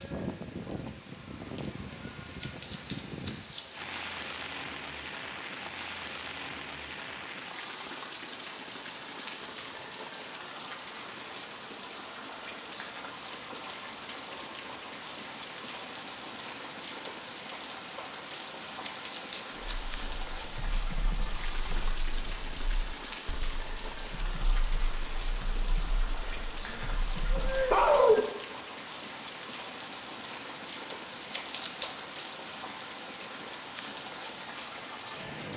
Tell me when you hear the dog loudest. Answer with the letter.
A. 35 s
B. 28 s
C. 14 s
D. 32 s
B.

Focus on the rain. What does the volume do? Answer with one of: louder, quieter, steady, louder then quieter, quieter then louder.
steady.